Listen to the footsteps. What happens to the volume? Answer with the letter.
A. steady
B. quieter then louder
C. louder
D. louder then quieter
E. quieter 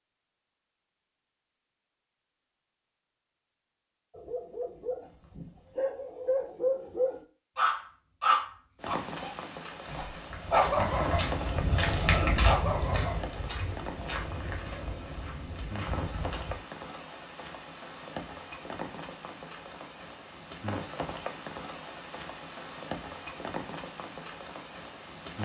D.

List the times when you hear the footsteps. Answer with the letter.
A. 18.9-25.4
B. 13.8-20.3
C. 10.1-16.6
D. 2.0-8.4
C.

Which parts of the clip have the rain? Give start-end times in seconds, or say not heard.
8.8-25.4.